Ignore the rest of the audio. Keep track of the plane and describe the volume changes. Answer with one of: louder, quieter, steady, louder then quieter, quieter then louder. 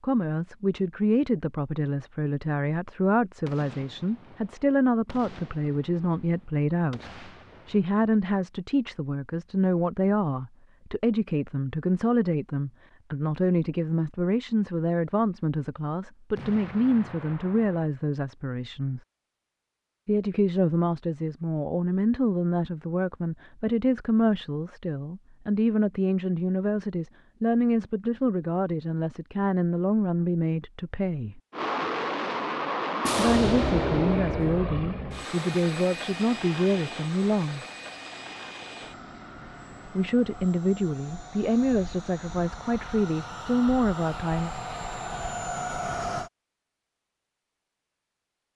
quieter then louder.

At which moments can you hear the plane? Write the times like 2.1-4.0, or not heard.
31.5-46.3.